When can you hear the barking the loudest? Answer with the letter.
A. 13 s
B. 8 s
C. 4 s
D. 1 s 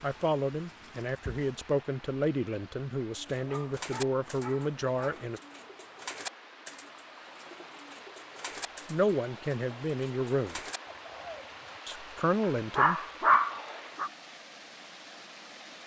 A.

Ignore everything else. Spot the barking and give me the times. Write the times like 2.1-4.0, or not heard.
3.4-5.2, 12.4-14.1.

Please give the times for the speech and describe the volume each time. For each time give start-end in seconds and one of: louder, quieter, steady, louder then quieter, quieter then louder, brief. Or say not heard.
0.0-5.4 steady
8.9-10.6 brief
11.8-13.0 brief.